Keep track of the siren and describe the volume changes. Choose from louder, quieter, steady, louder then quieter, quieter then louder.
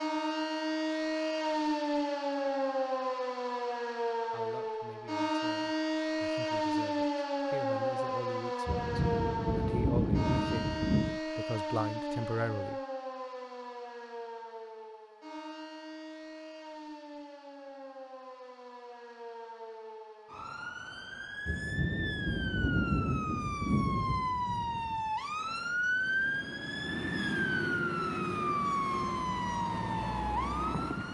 quieter then louder.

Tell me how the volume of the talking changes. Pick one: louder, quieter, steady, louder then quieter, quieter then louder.
louder.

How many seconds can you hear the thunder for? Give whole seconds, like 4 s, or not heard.
6 s.